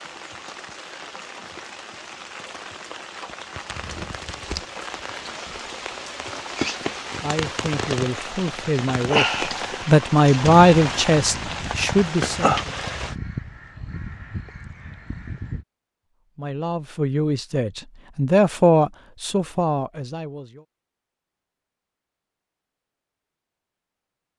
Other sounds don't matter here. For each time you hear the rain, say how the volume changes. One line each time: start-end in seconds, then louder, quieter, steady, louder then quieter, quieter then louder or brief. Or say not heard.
0.0-13.2 louder.